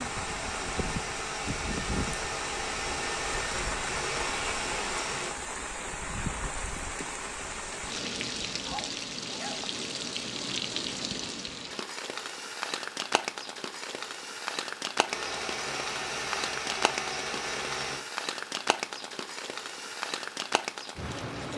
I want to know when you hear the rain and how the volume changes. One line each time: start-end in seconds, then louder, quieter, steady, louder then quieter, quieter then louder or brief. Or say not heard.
0.0-21.5 steady.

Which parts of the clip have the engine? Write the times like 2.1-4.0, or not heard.
0.0-5.3, 15.1-18.1.